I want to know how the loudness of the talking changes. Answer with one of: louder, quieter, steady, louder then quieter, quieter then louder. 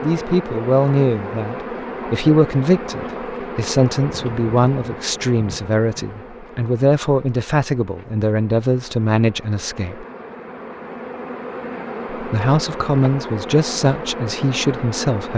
steady.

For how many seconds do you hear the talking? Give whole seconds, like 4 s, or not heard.
13 s.